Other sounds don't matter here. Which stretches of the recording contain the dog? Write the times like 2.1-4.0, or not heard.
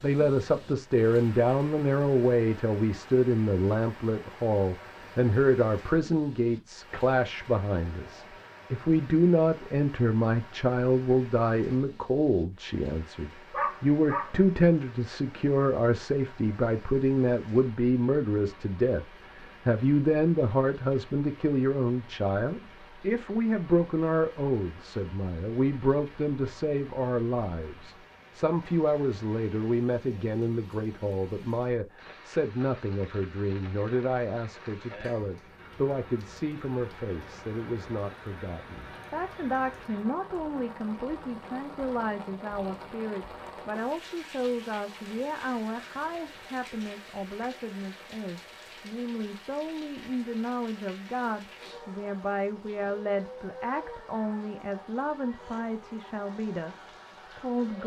13.5-14.4.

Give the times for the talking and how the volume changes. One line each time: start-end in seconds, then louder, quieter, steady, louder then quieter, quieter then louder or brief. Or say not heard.
0.0-57.8 quieter.